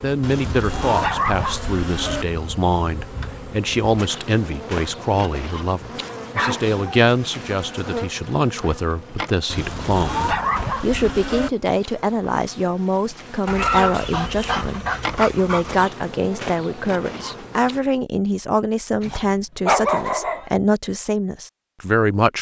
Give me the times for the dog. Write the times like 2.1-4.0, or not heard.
0.2-2.2, 6.2-7.1, 9.5-11.5, 13.4-15.9, 19.0-20.6.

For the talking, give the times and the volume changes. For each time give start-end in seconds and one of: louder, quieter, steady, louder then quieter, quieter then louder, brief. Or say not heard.
0.0-22.3 steady.